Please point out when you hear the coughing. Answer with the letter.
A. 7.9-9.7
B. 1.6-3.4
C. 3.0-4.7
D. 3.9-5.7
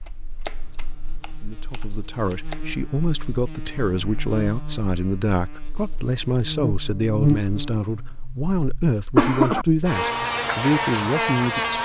A.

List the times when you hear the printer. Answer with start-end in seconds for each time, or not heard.
not heard.